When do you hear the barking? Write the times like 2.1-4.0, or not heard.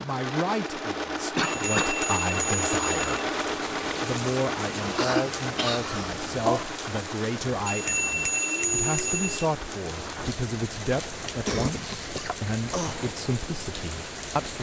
not heard.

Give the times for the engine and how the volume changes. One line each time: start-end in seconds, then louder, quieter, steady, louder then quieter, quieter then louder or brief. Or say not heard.
0.0-14.5 quieter.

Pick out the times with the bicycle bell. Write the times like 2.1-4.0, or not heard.
1.4-3.0, 7.7-9.4.